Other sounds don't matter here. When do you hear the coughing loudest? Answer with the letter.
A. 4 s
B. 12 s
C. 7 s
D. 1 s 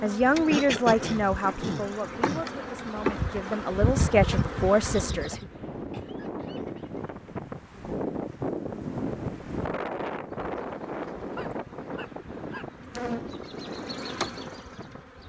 D.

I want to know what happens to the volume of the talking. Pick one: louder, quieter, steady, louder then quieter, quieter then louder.
quieter then louder.